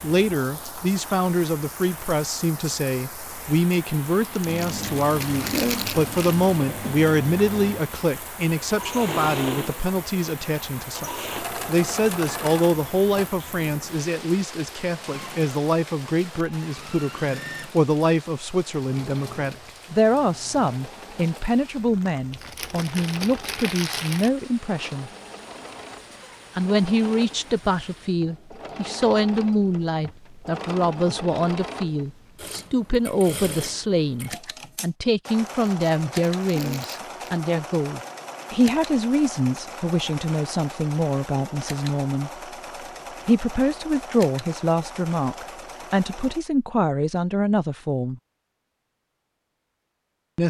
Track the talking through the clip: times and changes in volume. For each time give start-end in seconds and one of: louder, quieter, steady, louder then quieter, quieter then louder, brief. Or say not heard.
0.0-25.1 steady
26.6-42.3 steady
43.2-48.2 steady.